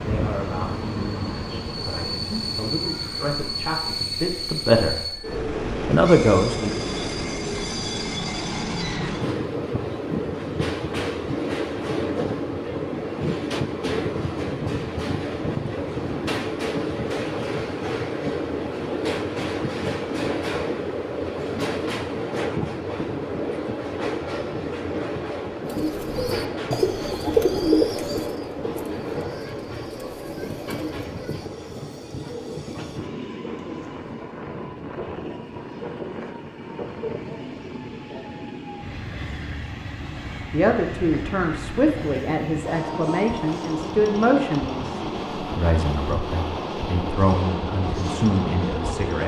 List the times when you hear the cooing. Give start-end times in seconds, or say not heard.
25.6-33.6.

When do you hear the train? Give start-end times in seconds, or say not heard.
0.0-49.2.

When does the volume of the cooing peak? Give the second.
28 s.